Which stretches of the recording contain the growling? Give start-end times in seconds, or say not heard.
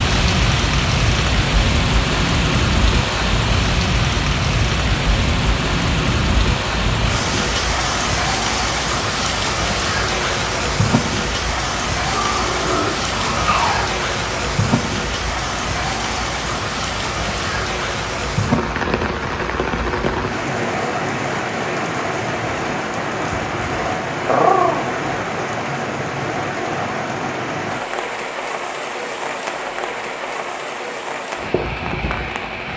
12.1-13.8, 24.2-24.9.